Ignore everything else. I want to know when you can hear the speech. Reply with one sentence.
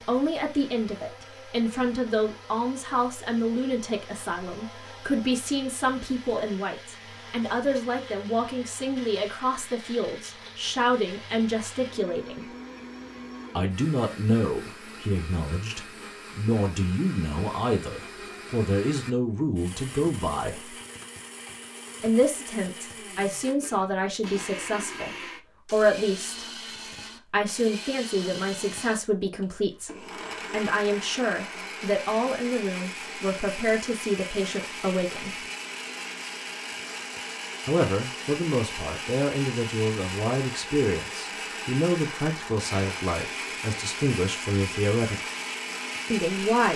You can hear the speech from 0.0 to 12.5 s, from 13.6 to 20.8 s, from 22.0 to 26.4 s, from 27.2 to 35.4 s, from 37.6 to 45.2 s and from 46.1 to 46.7 s.